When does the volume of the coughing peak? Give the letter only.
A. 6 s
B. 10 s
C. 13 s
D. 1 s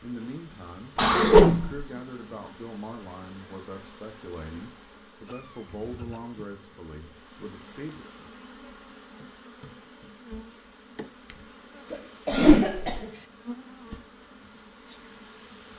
D.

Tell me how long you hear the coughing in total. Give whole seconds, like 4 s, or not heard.
3 s.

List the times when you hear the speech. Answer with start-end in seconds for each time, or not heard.
0.0-8.1.